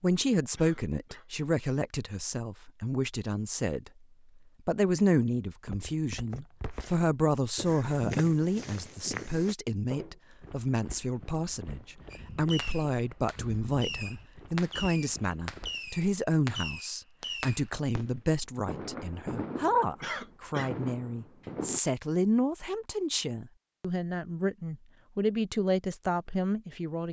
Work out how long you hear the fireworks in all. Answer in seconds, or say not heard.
10 s.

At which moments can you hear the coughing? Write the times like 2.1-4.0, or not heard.
0.6-1.3, 20.0-20.8.